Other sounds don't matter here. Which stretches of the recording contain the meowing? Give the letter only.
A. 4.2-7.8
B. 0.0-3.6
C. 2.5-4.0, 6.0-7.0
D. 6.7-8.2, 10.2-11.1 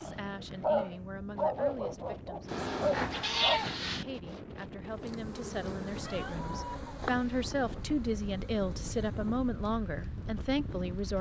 C.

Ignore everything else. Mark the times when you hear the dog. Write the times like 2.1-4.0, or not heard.
0.0-3.6.